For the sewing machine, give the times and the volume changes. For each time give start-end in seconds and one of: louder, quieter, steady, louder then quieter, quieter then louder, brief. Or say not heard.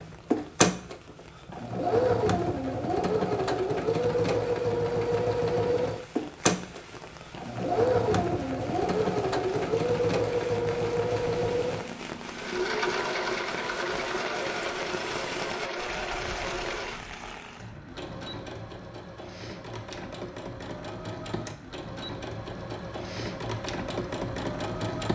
0.0-25.1 quieter.